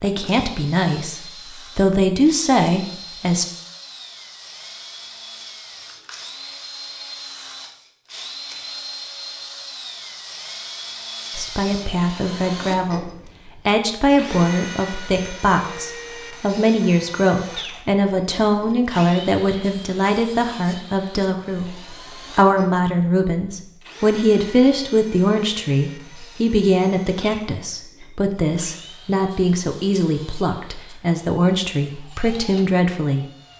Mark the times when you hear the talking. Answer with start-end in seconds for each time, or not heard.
0.0-3.5, 11.3-33.5.